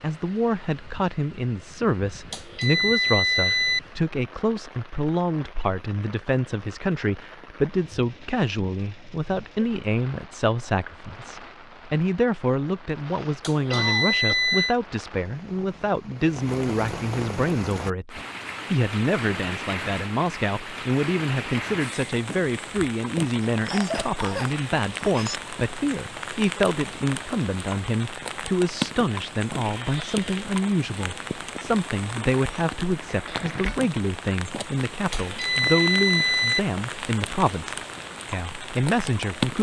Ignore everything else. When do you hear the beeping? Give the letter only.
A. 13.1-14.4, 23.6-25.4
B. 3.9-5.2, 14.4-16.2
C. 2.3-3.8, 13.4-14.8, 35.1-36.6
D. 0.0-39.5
C.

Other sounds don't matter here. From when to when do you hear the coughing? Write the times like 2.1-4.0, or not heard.
13.1-14.4, 23.6-25.4.